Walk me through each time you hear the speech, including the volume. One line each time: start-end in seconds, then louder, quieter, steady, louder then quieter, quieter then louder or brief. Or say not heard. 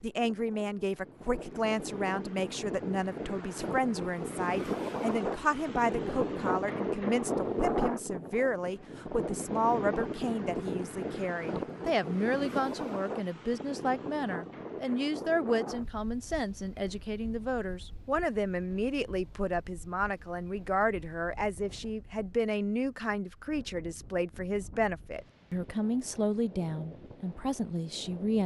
0.0-28.4 steady.